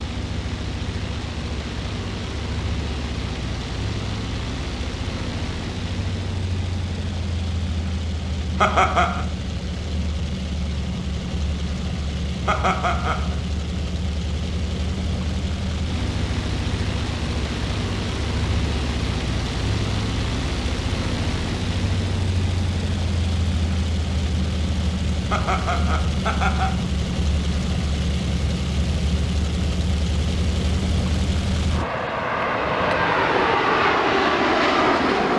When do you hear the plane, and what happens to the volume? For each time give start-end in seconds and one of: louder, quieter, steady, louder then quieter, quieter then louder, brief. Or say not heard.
0.0-35.3 louder.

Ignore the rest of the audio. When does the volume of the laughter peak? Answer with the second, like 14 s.
9 s.